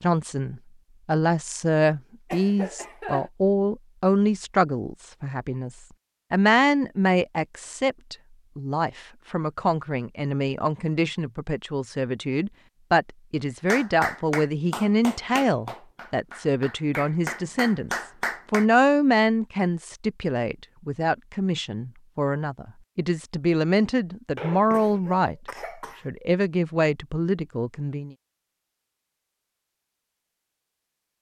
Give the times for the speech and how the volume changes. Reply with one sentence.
You can hear the speech from 0.0 to 25.4 s, at a steady volume; and briefly from 26.1 to 28.1 s.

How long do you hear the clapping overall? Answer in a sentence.
You can hear the clapping for 5 seconds altogether.